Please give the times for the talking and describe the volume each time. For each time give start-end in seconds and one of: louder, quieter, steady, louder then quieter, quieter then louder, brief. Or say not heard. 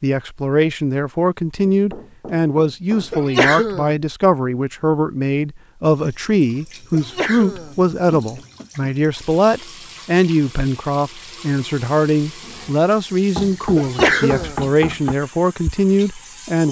0.0-16.6 steady.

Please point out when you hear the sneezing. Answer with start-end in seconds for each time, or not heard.
3.1-4.0, 6.9-7.8, 13.8-14.6.